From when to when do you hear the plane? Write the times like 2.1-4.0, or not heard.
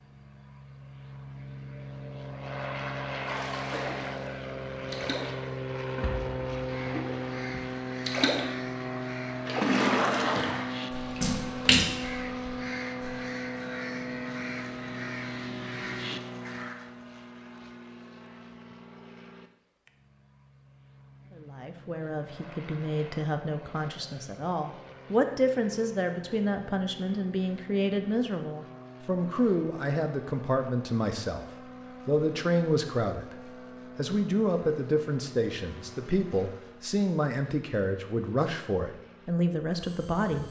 0.0-40.4.